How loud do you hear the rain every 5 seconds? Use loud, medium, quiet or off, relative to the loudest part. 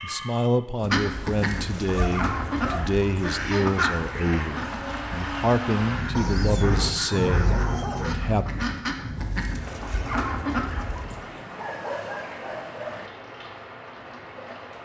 medium, loud, medium.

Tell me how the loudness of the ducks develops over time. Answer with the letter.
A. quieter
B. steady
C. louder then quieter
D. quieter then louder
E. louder
D.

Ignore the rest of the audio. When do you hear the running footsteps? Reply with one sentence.
The running footsteps can't be heard in this clip.